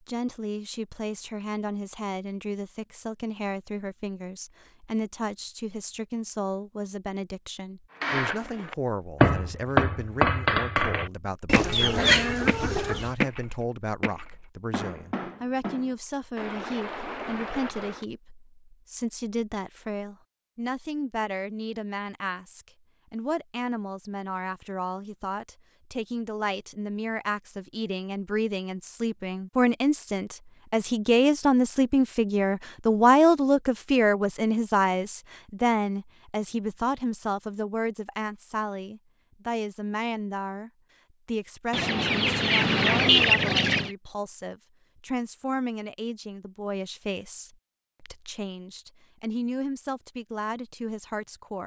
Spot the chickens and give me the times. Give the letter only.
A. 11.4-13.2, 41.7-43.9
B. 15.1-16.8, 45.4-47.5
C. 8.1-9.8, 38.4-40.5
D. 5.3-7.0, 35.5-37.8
A.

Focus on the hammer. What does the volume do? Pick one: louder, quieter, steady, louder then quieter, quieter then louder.
quieter.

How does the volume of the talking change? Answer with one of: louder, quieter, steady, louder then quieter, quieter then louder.
louder then quieter.